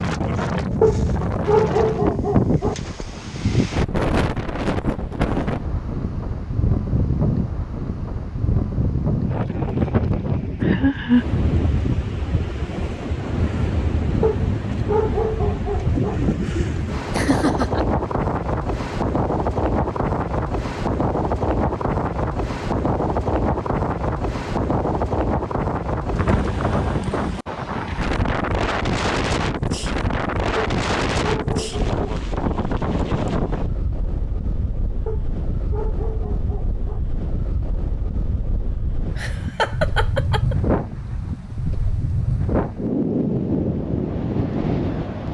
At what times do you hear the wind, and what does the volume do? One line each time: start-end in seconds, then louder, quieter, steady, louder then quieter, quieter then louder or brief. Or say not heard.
0.0-45.2 steady.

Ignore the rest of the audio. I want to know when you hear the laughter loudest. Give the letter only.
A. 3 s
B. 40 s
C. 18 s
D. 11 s
D.